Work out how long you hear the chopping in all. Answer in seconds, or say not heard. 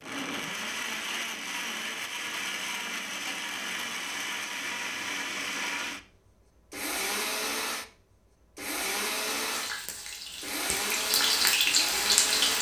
not heard.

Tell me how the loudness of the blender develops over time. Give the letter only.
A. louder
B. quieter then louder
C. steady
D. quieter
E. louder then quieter
C.